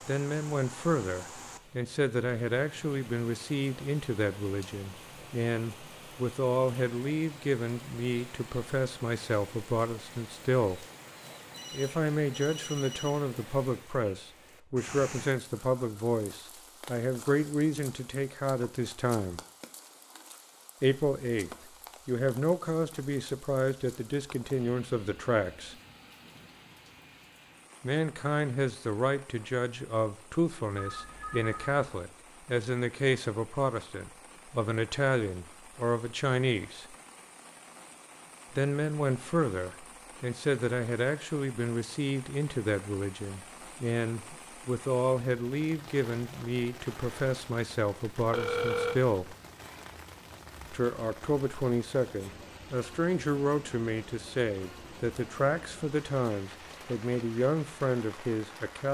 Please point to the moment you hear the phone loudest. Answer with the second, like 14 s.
49 s.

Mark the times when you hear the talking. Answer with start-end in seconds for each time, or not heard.
0.1-10.8, 11.7-19.4, 20.8-25.8, 27.8-37.0, 38.5-49.4, 50.7-58.8.